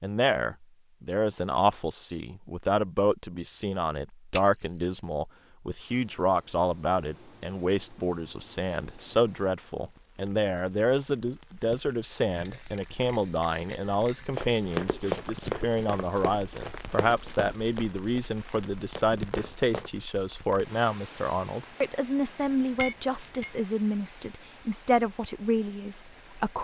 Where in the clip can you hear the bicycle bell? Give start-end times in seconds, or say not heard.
4.3-5.0, 12.3-14.6, 22.6-23.6.